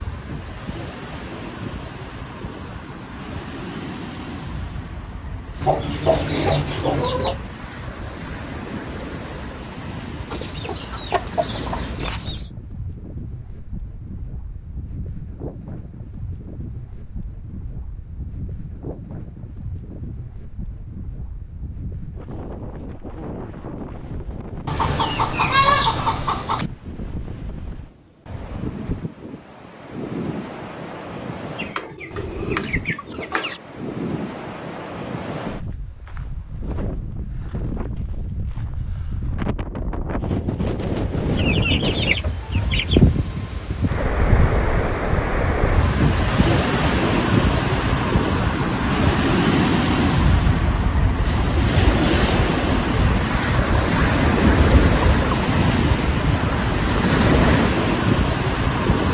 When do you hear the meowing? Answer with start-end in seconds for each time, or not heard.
not heard.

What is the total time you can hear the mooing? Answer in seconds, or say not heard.
not heard.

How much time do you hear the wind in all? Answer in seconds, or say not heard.
59 s.